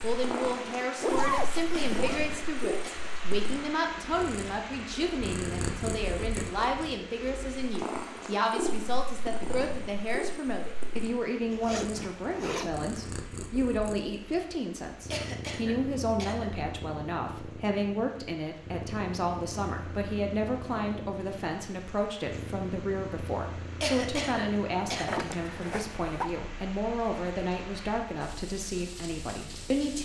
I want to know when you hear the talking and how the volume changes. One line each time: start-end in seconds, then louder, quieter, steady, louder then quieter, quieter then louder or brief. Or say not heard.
0.0-30.0 steady.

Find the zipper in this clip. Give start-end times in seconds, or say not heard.
1.0-2.4, 11.5-12.9, 25.1-26.3.